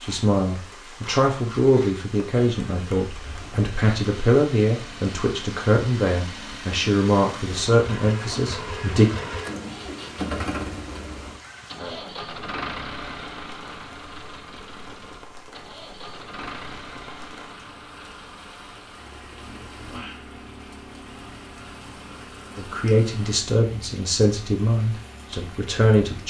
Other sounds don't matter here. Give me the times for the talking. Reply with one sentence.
The talking can be heard from 0.0 to 9.1 s and from 22.6 to 26.2 s.